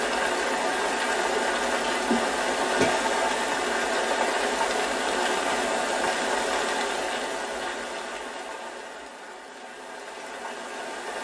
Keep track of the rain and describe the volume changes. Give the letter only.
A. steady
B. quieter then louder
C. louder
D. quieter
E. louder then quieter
D.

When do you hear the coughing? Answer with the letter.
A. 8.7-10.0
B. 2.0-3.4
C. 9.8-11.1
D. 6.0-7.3
B.